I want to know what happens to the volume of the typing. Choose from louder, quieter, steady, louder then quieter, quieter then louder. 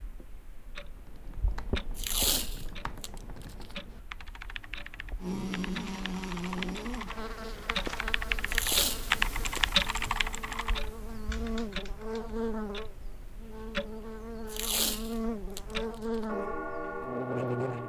louder then quieter.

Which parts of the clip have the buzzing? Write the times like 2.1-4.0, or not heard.
5.2-17.8.